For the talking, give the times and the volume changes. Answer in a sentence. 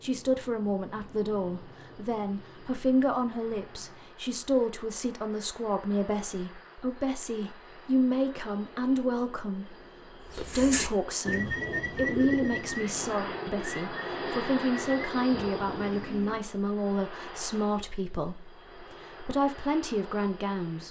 You can hear the talking from 0.0 to 20.8 s, at a steady volume.